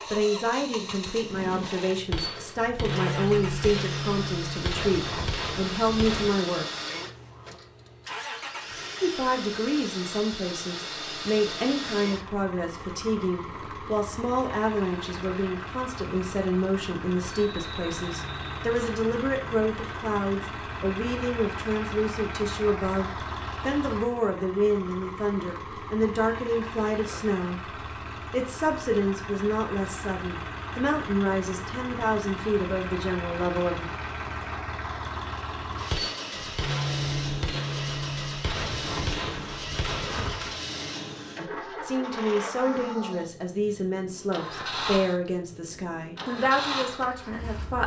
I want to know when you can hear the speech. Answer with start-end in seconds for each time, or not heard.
0.1-6.7, 9.0-33.9, 41.4-47.8.